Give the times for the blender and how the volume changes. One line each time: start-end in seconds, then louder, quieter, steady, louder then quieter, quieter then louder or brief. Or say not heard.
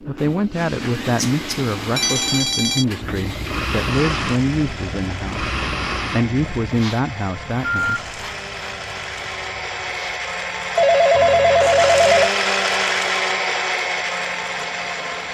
0.0-15.2 louder.